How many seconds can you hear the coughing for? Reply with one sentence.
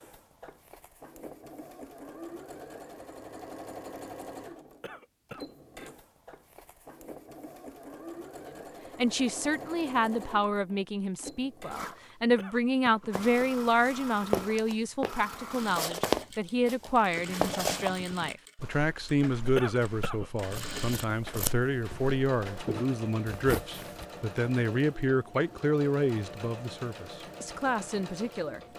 The coughing can be heard for 2 seconds in total.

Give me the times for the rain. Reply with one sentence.
The rain can't be heard in this clip.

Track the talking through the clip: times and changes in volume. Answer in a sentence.
The talking can be heard from 8.9 to 28.6 s, at a steady volume.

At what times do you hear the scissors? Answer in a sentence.
The scissors can be heard from 20.5 to 22.1 s.